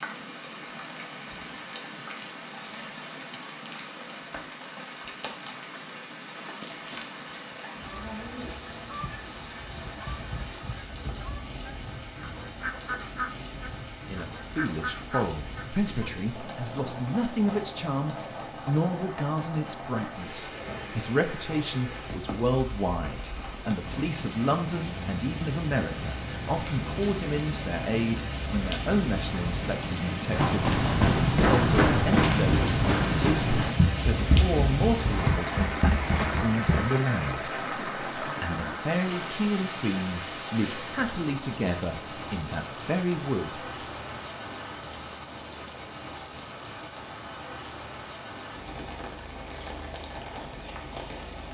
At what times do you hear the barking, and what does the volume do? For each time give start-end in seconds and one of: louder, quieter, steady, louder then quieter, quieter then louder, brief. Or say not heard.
not heard.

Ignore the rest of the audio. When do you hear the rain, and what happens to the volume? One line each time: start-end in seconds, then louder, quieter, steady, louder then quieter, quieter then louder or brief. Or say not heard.
0.0-51.4 louder then quieter.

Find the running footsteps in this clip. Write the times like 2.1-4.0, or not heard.
30.3-36.9.